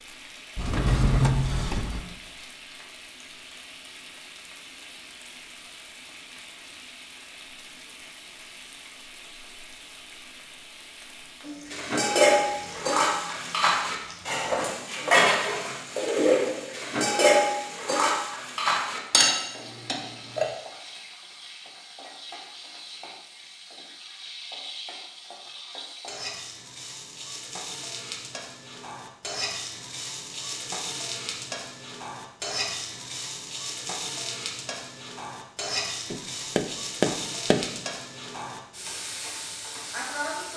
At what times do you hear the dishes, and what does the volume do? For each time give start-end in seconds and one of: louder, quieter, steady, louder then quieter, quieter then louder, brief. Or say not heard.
11.7-20.4 steady.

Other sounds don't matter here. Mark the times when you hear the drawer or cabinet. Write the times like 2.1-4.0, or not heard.
0.6-2.1.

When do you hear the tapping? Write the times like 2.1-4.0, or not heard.
36.1-37.7.